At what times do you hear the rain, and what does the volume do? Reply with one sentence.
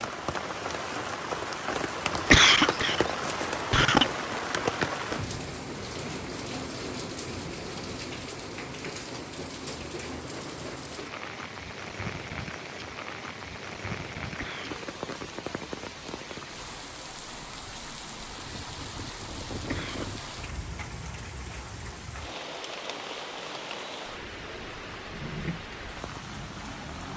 You can hear the rain from 0.0 to 27.1 s, getting quieter.